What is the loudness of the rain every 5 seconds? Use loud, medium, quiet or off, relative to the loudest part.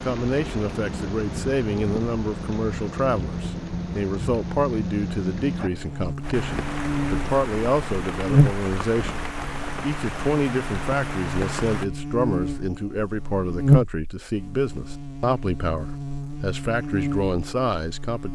loud, loud, loud, off.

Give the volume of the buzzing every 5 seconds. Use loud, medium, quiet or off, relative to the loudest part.
off, loud, loud, medium.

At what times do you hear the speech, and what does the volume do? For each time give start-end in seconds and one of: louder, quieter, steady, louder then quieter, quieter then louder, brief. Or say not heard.
0.0-18.2 steady.